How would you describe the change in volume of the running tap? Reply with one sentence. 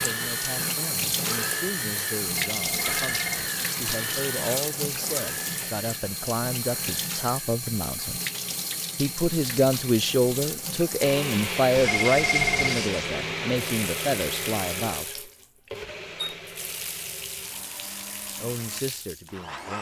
The loudness of the running tap goes down.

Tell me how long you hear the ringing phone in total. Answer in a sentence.
You can hear the ringing phone for 2 seconds altogether.